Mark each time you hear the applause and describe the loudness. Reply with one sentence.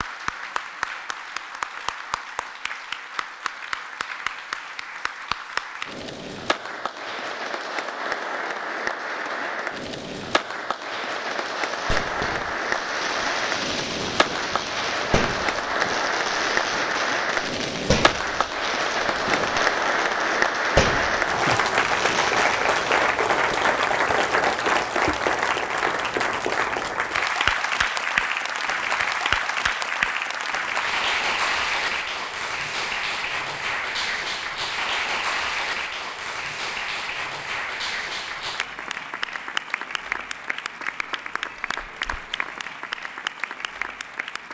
The applause can be heard from 0.0 to 44.4 s, getting louder then quieter.